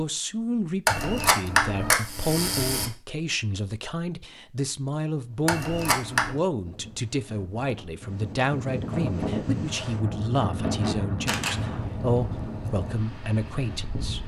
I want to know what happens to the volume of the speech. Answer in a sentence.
The volume of the speech stays about the same.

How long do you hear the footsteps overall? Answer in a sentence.
You can't hear the footsteps here.